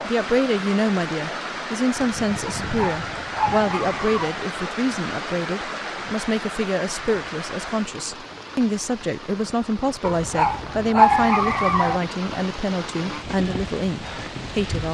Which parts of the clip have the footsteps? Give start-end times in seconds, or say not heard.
not heard.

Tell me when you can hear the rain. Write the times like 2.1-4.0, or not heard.
0.0-14.9.